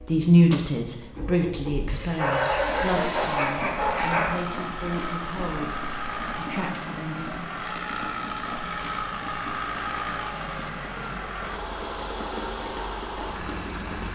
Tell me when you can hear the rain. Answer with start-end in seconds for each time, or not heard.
2.6-14.1.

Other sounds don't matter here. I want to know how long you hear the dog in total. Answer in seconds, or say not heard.
2 s.